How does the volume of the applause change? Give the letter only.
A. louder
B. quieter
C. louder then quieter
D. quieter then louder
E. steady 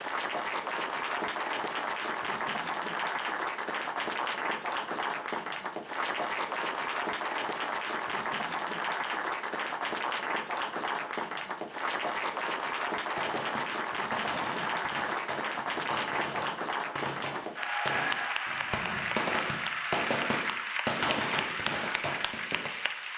E.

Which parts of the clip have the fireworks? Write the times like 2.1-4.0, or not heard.
13.2-22.7.